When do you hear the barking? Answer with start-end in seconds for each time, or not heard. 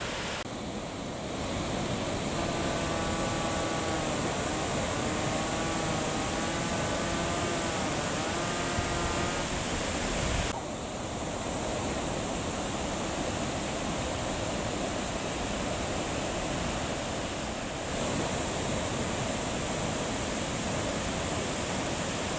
not heard.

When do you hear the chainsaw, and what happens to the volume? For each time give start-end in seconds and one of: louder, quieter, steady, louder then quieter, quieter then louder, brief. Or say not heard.
2.3-9.4 steady.